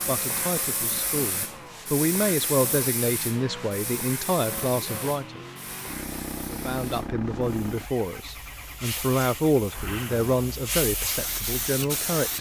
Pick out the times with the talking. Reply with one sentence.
The talking can be heard from 0.1 to 5.4 s and from 6.5 to 12.3 s.